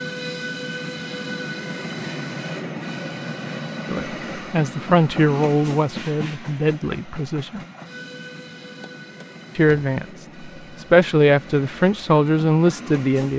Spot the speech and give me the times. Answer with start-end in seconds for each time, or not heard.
3.9-7.6, 9.6-13.3.